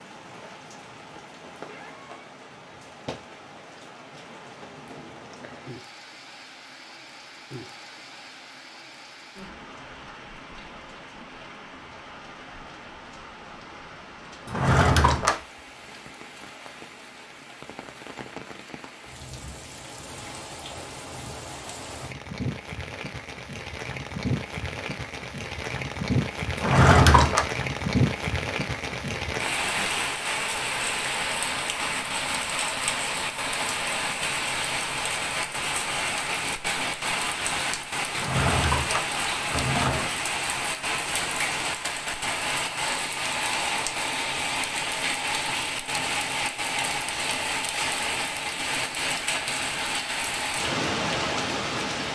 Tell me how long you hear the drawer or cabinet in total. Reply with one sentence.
The drawer or cabinet can be heard for 4 seconds in total.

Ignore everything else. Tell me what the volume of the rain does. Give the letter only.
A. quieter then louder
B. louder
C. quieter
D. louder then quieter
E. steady
B.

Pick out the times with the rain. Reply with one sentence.
The rain can be heard from 0.0 to 52.1 s.